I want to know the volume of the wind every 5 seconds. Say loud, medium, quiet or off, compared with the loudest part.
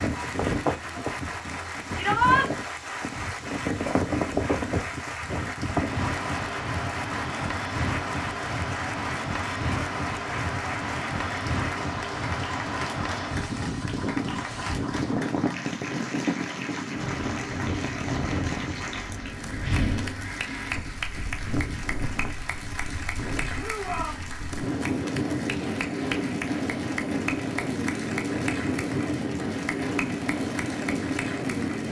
loud, loud, loud, loud, medium, loud, loud.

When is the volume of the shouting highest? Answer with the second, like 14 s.
2 s.